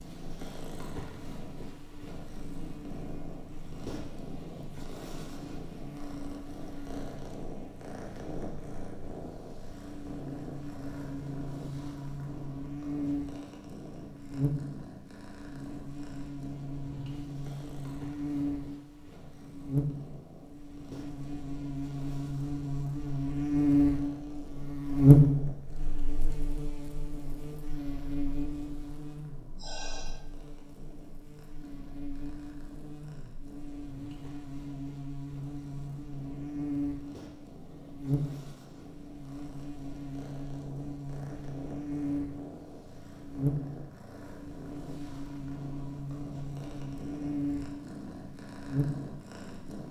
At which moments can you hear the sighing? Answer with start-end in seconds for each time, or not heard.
29.6-30.2.